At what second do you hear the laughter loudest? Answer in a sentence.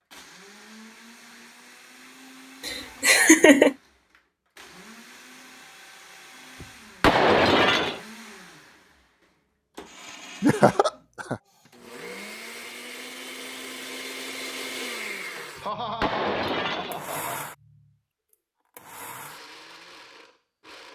The volume of the laughter peaks at 3 seconds.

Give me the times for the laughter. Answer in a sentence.
The laughter can be heard from 2.6 to 3.8 s, from 10.4 to 11.3 s and from 15.3 to 17.5 s.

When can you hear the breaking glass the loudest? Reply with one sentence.
The loudest moment of the breaking glass is at 7 seconds.